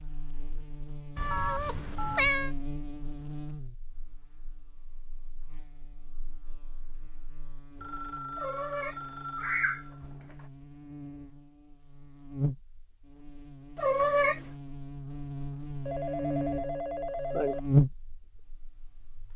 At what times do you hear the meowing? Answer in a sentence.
The meowing can be heard from 1.1 to 2.5 s, from 8.3 to 9.8 s and from 13.8 to 14.4 s.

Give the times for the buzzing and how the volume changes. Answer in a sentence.
The buzzing can be heard from 0.0 to 19.3 s, getting quieter then louder.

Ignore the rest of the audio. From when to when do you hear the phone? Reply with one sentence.
You can hear the phone from 1.3 to 2.2 s, from 7.8 to 10.4 s and from 15.8 to 17.6 s.